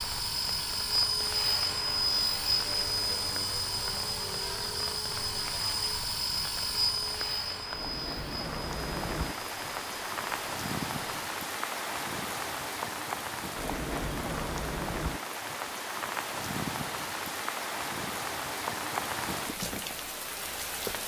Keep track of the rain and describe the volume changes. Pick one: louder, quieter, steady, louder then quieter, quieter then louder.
louder.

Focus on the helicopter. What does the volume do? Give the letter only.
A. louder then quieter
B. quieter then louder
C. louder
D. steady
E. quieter
E.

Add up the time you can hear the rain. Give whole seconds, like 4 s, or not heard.
21 s.